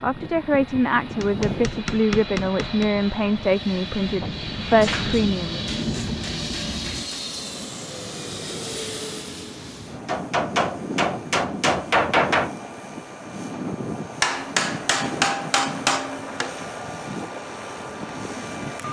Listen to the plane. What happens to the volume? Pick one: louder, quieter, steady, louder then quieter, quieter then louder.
steady.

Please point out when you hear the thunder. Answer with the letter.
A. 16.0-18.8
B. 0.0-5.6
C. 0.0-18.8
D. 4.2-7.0
D.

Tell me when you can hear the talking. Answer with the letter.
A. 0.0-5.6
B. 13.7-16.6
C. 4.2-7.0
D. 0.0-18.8
A.